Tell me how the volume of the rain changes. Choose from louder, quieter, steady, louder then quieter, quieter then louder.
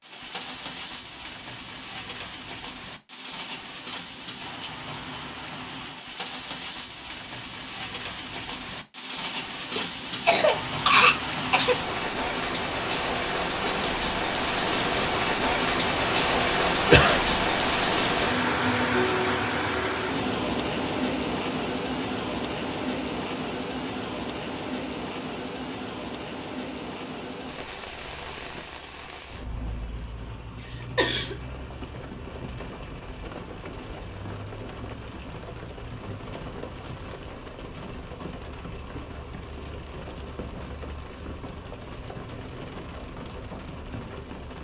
louder then quieter.